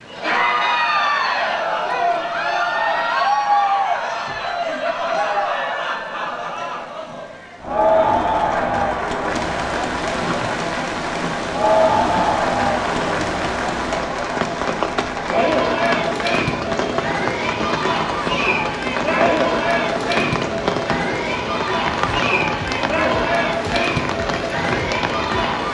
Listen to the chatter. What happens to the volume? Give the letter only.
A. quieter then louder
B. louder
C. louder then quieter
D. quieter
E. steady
E.